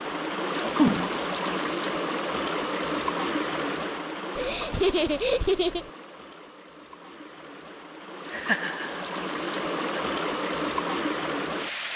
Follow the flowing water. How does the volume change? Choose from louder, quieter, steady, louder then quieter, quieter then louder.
quieter then louder.